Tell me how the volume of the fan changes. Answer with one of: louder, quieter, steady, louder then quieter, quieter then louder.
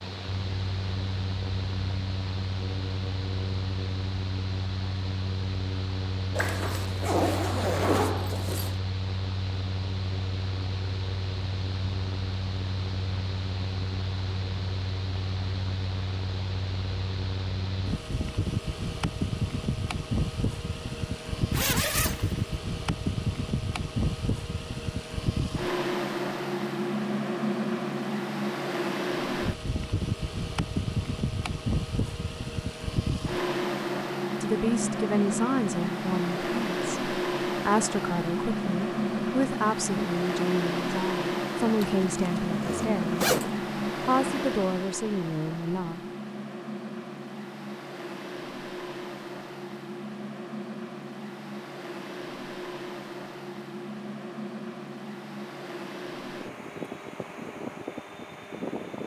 louder then quieter.